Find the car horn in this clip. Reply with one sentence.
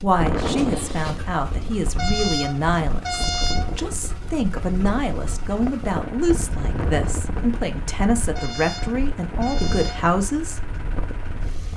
The car horn can be heard from 1.9 to 3.8 s and from 8.3 to 10.2 s.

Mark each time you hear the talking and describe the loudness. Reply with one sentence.
You can hear the talking from 0.0 to 10.7 s, at a steady volume.